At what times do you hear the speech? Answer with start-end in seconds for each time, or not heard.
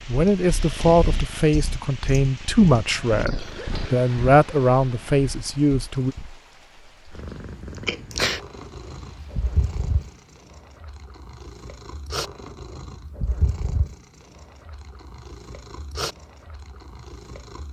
0.1-6.2.